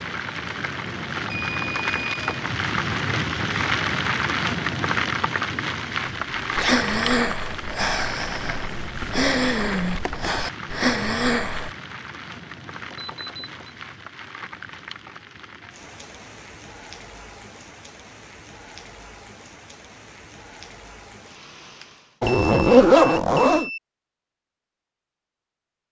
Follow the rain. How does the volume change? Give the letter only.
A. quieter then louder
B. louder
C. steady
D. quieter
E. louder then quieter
D.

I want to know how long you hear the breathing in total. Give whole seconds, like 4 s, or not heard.
5 s.